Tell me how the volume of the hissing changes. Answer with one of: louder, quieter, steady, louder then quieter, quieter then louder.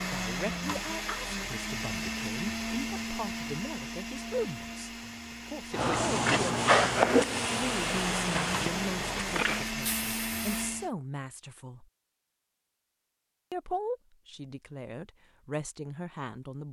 quieter.